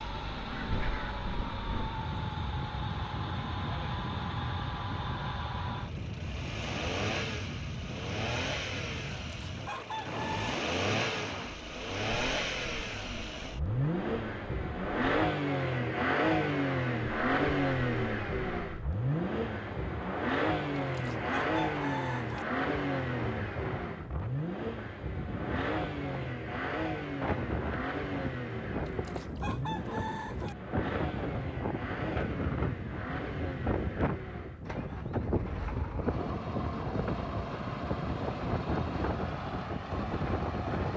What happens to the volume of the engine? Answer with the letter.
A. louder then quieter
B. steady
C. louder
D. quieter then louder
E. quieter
A.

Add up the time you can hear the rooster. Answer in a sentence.
The rooster can be heard for 5 seconds in total.